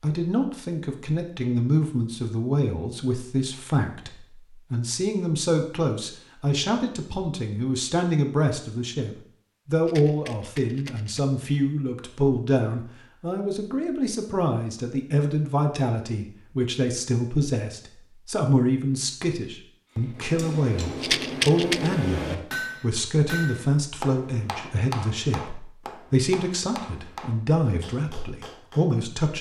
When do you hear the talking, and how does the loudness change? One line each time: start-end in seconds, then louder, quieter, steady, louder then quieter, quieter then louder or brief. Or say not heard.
0.0-29.3 steady.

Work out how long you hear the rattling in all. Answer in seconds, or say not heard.
2 s.